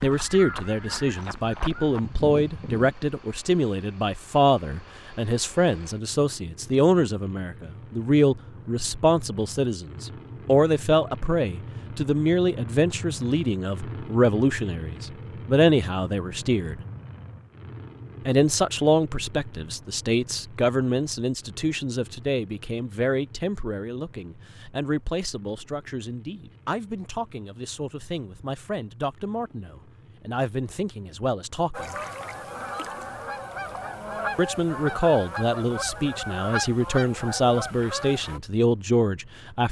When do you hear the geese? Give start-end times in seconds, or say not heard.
0.0-3.0, 31.7-38.4.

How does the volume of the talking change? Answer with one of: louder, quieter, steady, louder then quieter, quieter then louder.
quieter then louder.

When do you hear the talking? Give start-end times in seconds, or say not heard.
0.0-16.8, 18.2-31.9, 34.4-39.6.